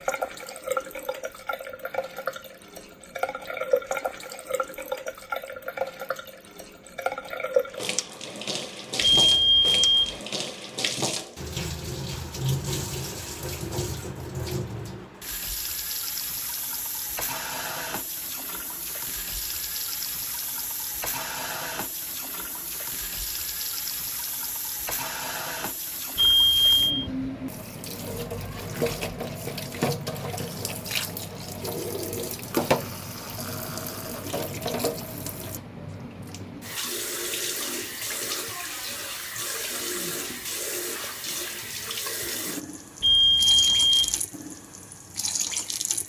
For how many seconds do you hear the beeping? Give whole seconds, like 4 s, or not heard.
3 s.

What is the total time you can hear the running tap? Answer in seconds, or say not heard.
46 s.